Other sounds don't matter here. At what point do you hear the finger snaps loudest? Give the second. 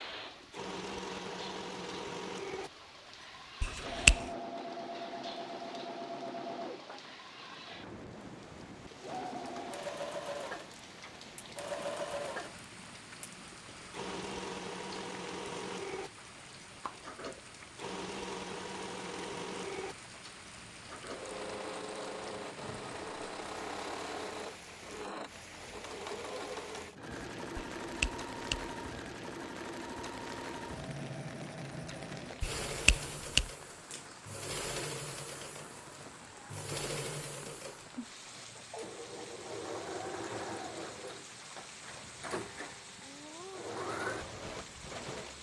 4 s.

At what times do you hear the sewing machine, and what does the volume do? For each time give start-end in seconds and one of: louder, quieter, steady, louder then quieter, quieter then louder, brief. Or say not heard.
0.0-45.3 steady.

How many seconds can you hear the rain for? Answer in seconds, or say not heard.
45 s.